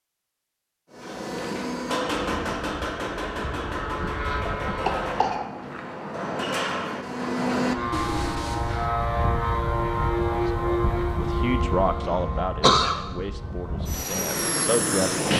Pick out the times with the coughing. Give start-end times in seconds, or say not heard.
4.5-5.8, 12.0-12.9.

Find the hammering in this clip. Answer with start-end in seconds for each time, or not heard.
0.9-8.9.